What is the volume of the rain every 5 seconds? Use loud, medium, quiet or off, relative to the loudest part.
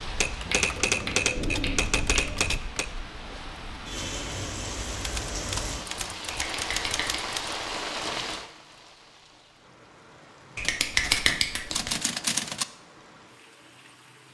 loud, loud, quiet.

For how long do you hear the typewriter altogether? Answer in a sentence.
The typewriter can be heard for 7 seconds in total.